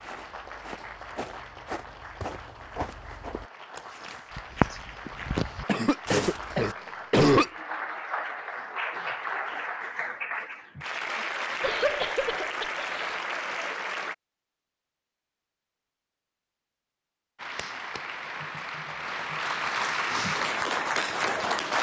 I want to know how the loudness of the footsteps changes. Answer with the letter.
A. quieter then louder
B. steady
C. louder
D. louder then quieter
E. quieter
C.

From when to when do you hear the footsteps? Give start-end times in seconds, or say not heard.
0.0-6.8.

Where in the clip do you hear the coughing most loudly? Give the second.
7 s.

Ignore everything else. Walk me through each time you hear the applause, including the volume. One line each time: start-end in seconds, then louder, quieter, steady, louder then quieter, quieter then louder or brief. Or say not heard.
0.0-14.2 louder
17.4-21.7 louder.